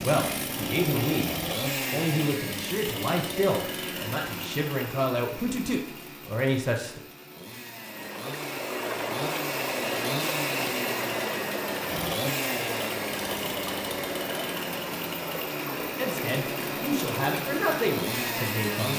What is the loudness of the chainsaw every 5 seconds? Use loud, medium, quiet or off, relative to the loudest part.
loud, medium, loud, loud.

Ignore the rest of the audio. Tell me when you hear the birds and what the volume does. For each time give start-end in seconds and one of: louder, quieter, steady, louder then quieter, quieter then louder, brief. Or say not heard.
not heard.